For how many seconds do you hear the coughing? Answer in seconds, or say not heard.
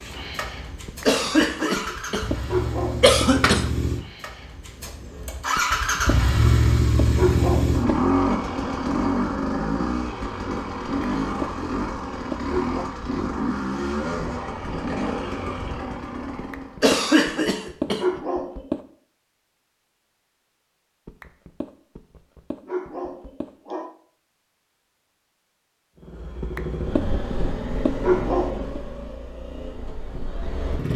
4 s.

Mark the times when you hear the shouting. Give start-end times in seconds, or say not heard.
not heard.